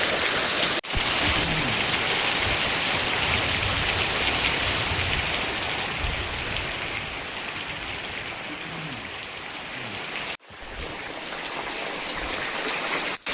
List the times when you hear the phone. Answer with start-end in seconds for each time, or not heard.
not heard.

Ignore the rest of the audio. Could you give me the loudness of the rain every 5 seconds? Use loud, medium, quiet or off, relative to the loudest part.
loud, medium, medium.